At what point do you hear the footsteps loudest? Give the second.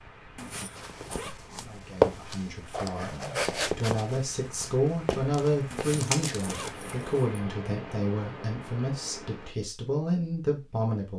2 s.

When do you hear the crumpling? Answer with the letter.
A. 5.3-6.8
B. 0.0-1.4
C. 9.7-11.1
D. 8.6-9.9
A.